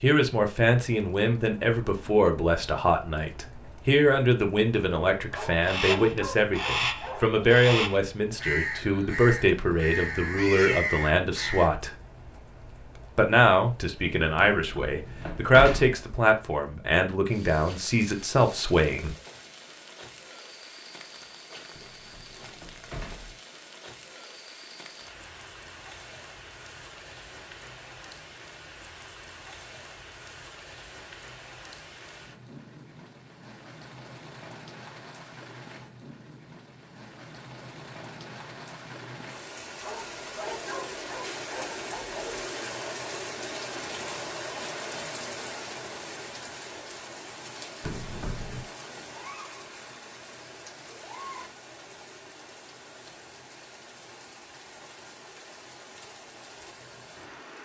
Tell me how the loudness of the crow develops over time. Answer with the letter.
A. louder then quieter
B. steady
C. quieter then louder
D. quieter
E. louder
B.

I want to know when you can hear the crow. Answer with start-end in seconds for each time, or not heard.
5.6-11.7.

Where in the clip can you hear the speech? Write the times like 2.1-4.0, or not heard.
0.0-11.9, 13.2-19.1.